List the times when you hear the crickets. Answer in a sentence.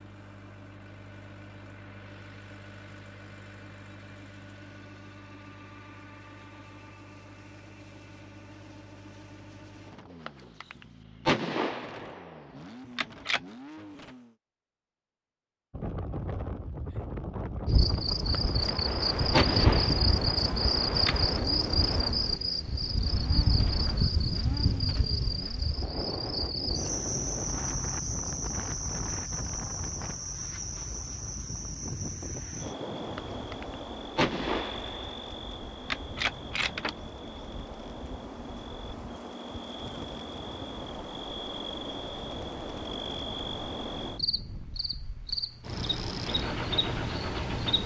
You can hear the crickets from 17.6 to 47.8 s.